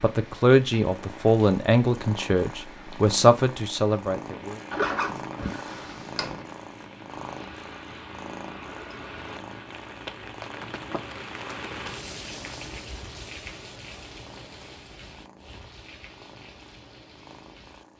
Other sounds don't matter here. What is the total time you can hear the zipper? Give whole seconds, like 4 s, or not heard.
2 s.